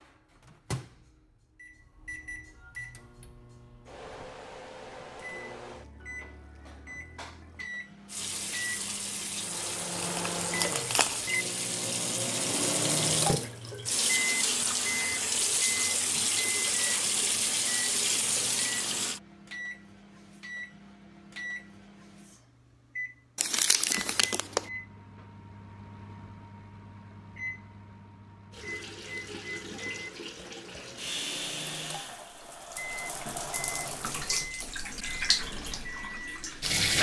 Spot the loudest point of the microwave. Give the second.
13 s.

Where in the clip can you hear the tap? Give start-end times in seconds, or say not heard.
8.1-19.2, 28.5-36.9.